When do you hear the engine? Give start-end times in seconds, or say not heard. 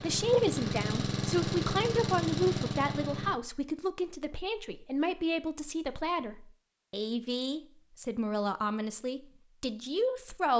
0.0-3.4.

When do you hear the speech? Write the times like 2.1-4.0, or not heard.
0.0-10.5.